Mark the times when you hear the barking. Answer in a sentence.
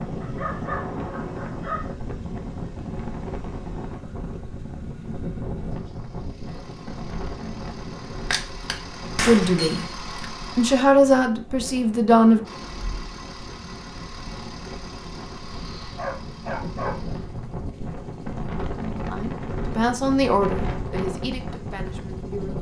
You can hear the barking from 0.2 to 1.9 s and from 15.3 to 17.4 s.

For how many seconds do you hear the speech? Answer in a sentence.
The speech can be heard for 6 seconds in total.